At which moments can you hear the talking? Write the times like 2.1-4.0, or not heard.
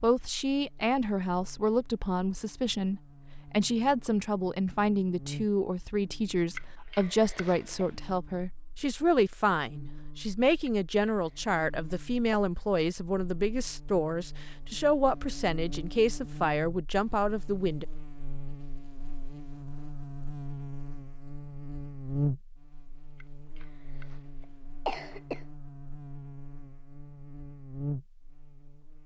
0.0-17.9.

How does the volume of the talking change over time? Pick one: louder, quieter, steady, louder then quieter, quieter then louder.
steady.